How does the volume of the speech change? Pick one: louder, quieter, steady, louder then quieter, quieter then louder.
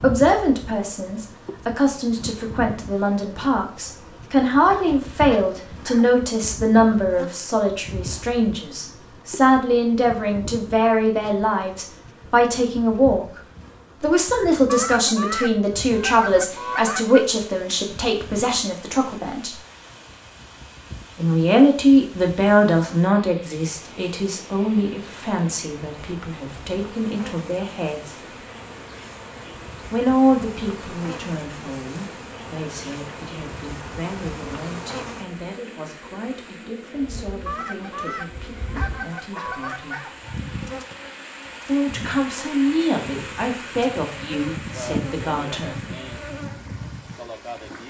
quieter.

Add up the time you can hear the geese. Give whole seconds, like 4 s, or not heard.
5 s.